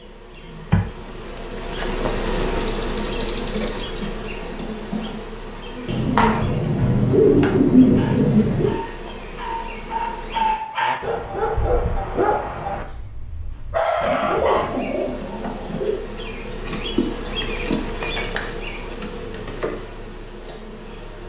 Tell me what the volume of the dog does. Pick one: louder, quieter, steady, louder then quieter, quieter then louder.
louder.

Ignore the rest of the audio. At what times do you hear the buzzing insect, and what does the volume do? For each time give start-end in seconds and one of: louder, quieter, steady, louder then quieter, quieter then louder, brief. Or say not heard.
0.0-10.6 quieter
14.4-21.2 louder then quieter.